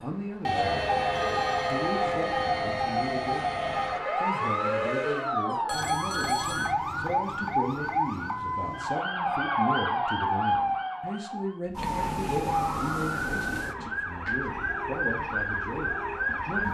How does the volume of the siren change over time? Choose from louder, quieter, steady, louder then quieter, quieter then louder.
steady.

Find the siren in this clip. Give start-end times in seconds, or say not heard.
0.0-16.6.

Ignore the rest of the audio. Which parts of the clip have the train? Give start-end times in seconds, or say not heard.
0.0-5.3.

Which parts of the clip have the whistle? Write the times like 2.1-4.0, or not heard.
not heard.